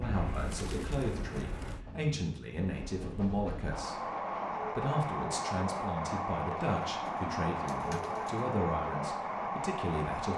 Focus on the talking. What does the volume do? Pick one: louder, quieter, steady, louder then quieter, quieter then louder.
steady.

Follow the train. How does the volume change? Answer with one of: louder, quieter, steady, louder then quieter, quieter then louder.
louder.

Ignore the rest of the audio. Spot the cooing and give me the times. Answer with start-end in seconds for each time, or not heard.
0.0-1.9, 6.8-8.4.